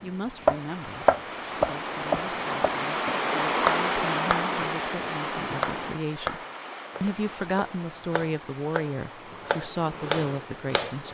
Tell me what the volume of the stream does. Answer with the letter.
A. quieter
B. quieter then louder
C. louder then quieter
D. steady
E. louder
C.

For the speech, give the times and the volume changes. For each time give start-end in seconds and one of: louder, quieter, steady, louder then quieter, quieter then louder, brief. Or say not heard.
0.0-6.4 quieter then louder
7.0-11.1 steady.